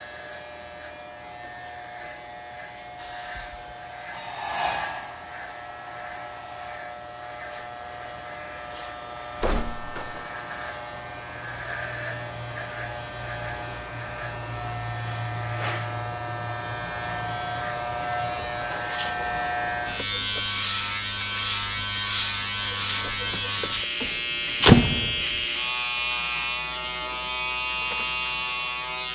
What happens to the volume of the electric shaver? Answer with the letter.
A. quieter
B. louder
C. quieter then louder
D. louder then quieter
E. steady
B.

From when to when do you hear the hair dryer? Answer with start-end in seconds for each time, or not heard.
3.0-6.8.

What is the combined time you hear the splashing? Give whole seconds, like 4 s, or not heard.
not heard.